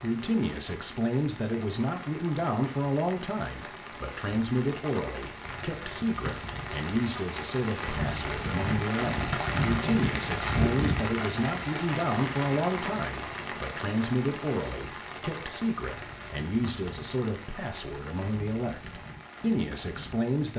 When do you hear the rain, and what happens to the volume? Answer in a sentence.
The rain can be heard from 0.0 to 20.5 s, getting louder then quieter.